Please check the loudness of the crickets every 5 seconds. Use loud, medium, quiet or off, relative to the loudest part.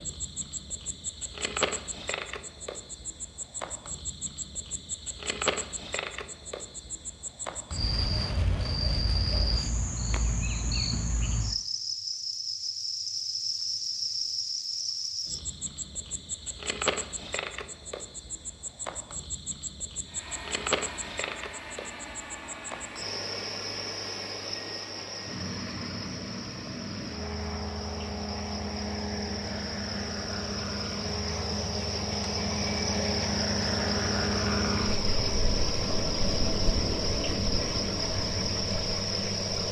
medium, loud, loud, medium, medium, medium, loud, loud.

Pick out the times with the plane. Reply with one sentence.
You can hear the plane from 20.1 to 39.6 s.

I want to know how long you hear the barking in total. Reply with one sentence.
The barking can't be heard in this clip.